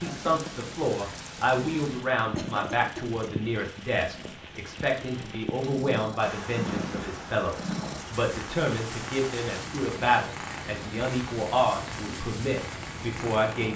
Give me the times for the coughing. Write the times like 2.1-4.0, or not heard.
2.4-3.1.